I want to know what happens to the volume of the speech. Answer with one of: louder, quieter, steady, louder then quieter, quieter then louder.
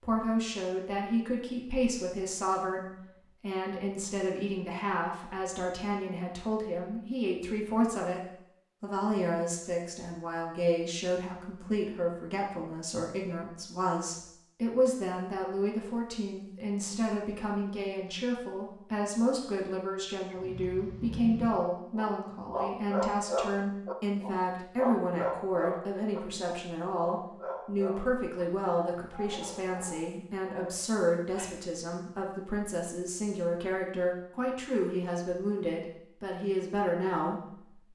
steady.